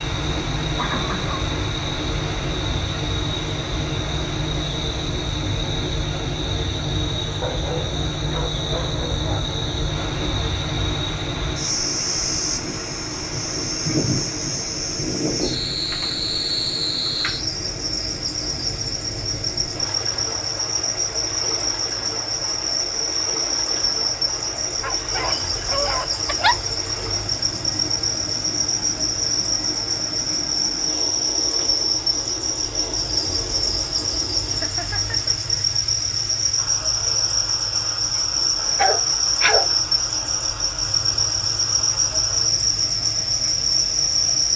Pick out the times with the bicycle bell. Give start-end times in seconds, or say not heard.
not heard.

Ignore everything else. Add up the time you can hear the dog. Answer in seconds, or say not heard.
5 s.